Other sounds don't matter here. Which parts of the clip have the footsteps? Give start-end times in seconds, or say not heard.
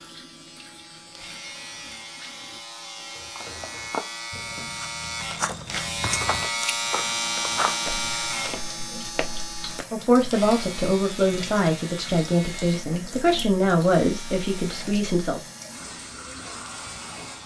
3.4-9.8.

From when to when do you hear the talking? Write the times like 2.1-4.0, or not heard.
9.9-15.4.